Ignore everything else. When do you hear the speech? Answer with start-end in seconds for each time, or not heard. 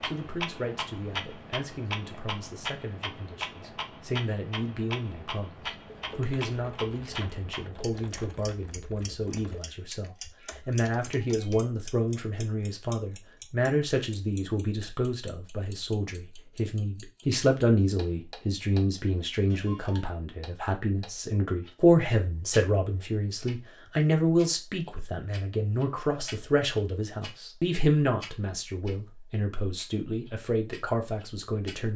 0.0-31.9.